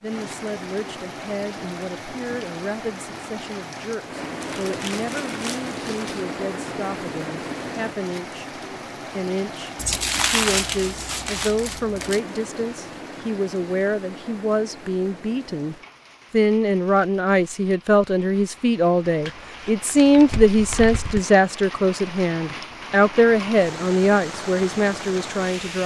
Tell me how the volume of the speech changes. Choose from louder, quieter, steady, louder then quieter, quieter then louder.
louder.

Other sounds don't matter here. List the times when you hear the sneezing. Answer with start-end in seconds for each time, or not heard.
not heard.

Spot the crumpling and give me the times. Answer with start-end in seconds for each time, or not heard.
4.4-6.2, 9.8-12.2, 19.2-21.2.